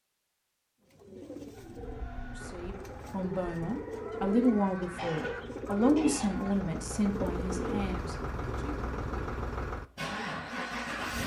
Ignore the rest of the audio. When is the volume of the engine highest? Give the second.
11 s.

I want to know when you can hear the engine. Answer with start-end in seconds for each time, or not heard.
2.4-11.2.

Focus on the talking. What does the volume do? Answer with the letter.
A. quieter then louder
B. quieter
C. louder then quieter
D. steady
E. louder
C.